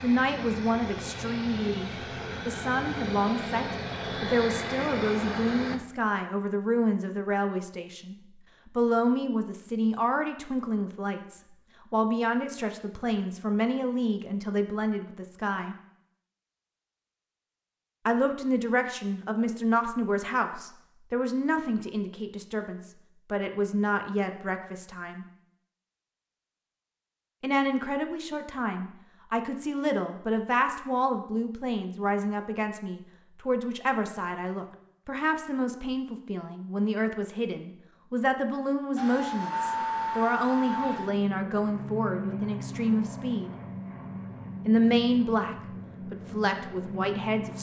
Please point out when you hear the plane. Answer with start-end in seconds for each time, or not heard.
0.0-5.8, 39.0-47.5.